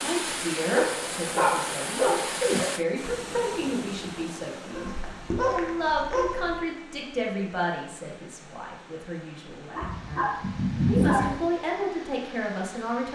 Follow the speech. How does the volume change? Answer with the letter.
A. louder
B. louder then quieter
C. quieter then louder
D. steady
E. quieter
C.